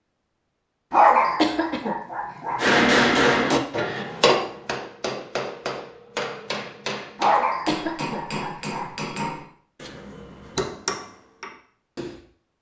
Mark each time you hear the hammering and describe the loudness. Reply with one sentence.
You can hear the hammering from 2.5 to 12.2 s, getting quieter.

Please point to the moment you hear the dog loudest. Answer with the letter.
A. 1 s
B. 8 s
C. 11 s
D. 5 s
A.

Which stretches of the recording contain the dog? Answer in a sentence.
The dog can be heard from 0.9 to 2.6 s and from 7.2 to 8.9 s.